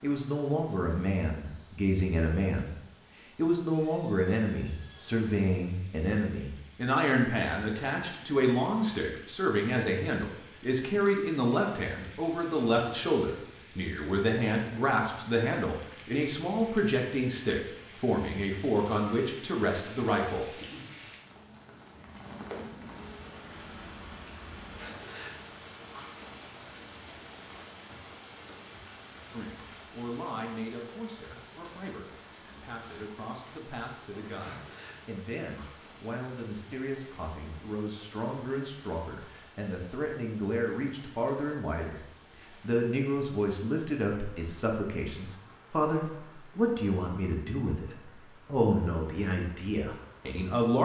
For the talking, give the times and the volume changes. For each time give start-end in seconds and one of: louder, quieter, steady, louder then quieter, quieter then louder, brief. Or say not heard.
0.0-2.8 brief
3.4-20.4 steady
29.3-50.8 louder.